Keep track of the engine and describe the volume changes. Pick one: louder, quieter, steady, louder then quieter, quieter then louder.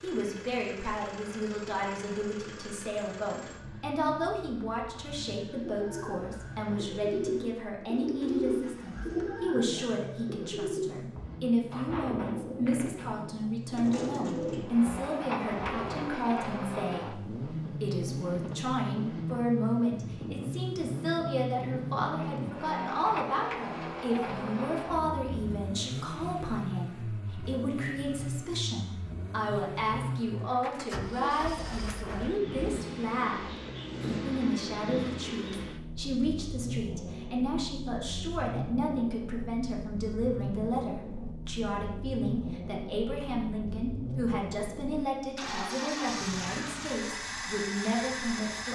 louder.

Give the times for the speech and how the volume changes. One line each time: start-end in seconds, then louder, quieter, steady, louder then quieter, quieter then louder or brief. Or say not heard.
0.0-48.7 steady.